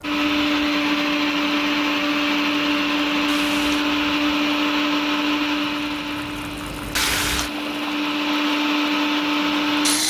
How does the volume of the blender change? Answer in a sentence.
The loudness of the blender goes down, then up.